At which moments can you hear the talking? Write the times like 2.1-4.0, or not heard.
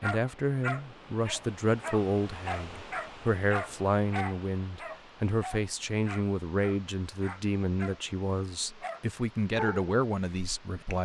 0.0-10.9.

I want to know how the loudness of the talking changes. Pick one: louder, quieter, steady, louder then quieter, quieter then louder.
steady.